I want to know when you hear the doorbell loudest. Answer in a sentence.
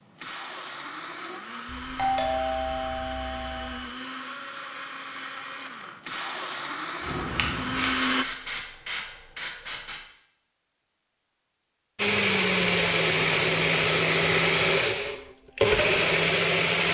The volume of the doorbell peaks at 2 seconds.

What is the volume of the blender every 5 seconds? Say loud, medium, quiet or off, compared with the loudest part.
quiet, medium, loud, loud.